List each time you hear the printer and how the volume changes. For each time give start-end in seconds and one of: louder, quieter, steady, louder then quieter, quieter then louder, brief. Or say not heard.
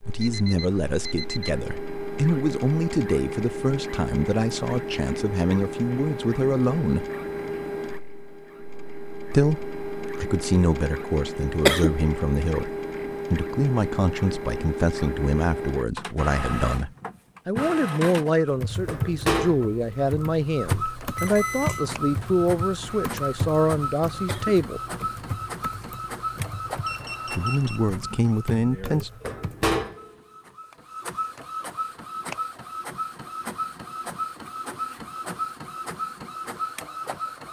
0.0-37.4 steady.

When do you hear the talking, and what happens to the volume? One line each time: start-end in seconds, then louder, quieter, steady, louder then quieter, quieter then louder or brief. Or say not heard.
0.1-7.1 steady
9.3-24.8 steady
27.4-29.1 brief.